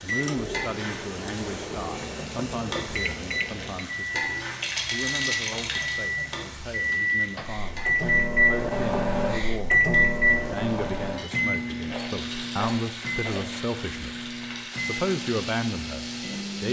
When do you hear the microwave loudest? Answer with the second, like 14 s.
10 s.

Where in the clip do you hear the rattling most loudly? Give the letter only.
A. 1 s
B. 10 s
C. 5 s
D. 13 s
C.